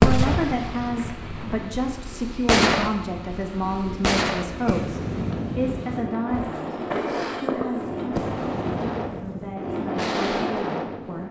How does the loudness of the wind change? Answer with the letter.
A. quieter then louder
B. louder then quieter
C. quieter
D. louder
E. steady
D.